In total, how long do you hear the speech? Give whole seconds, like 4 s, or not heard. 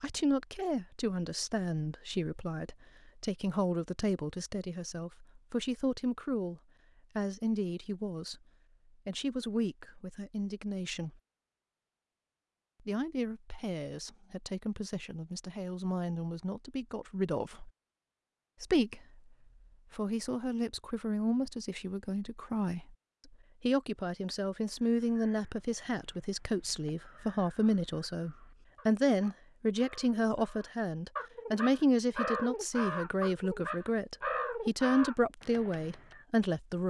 34 s.